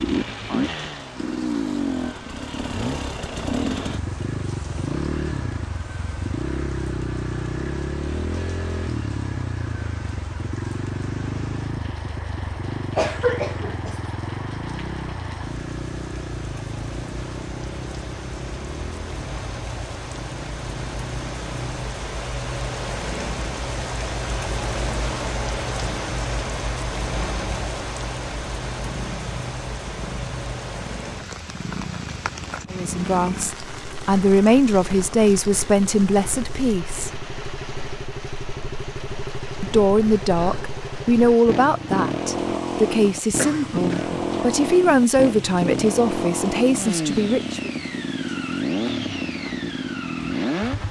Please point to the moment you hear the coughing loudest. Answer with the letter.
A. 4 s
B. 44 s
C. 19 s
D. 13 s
D.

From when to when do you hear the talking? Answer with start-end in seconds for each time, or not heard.
32.7-37.1, 39.6-47.7.